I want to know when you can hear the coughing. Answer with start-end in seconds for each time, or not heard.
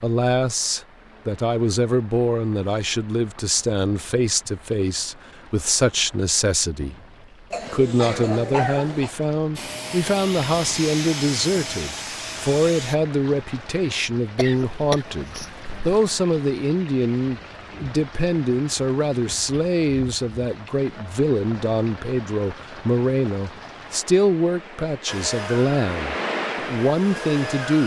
7.5-9.2, 14.3-15.9.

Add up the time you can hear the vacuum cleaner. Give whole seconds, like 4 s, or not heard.
6 s.